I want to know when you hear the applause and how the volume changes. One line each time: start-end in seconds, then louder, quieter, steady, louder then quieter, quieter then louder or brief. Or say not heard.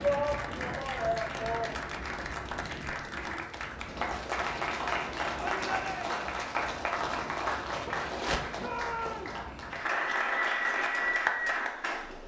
0.0-12.2 louder.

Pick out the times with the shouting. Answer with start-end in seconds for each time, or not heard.
0.0-1.9, 5.3-6.2, 8.6-9.4.